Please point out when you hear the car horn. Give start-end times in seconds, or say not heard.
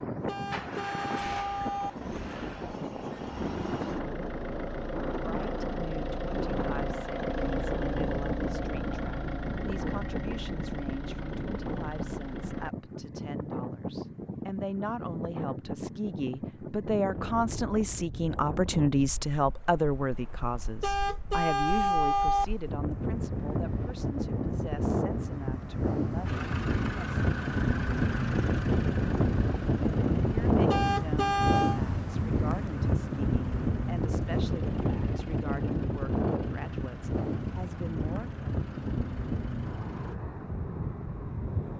0.2-1.9, 20.8-22.4, 30.7-31.8.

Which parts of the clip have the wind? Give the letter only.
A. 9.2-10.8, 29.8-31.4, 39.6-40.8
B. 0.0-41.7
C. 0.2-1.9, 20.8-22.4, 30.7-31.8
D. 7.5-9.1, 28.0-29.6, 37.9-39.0
B.